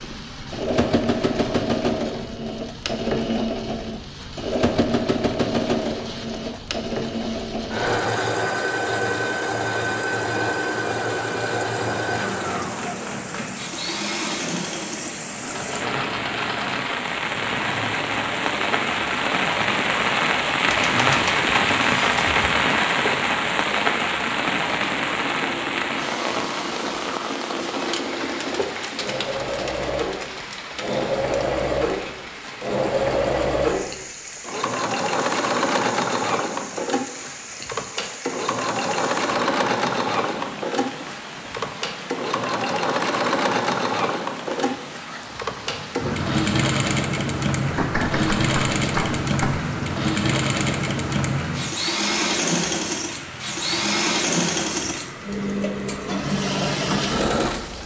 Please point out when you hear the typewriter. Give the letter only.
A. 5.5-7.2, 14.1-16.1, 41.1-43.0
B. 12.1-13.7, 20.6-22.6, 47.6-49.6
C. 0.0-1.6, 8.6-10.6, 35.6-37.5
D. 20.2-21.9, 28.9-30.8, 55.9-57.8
B.